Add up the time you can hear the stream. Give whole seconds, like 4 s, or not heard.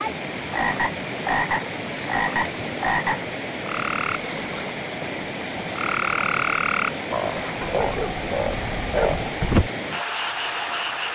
11 s.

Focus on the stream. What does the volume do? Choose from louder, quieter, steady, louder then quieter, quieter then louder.
steady.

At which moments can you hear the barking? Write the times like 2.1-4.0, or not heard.
7.6-9.3.